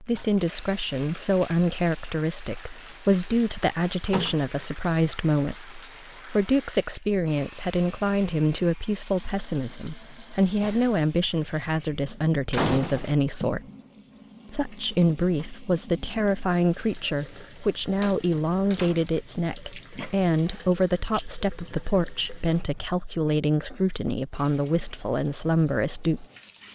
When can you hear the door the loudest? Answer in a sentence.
The loudest moment of the door is at 13 seconds.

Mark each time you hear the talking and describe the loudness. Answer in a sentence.
The talking can be heard from 0.0 to 13.6 s, at a steady volume; and from 14.5 to 26.2 s, at a steady volume.